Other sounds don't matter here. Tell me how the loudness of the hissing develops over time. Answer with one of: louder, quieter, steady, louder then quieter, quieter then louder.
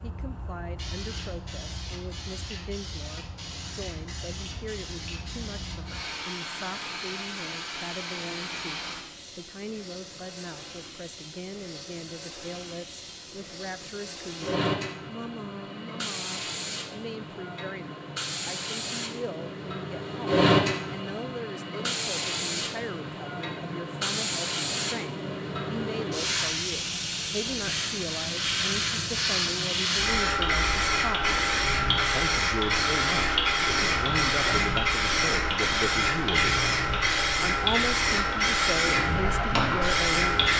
louder.